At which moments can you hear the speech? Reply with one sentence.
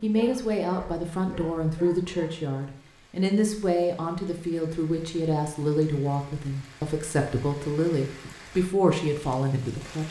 You can hear the speech from 0.0 to 10.0 s.